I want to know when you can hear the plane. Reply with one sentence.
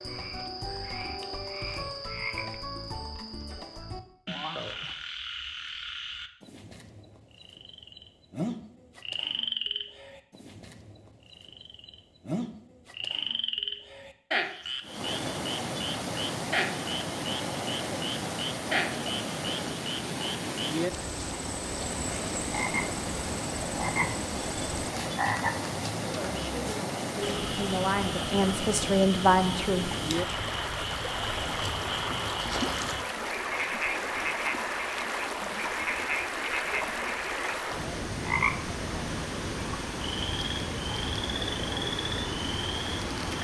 You can't hear the plane here.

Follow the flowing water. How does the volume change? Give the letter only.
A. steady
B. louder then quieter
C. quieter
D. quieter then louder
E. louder
A.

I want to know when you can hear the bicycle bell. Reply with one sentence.
The bicycle bell can't be heard in this clip.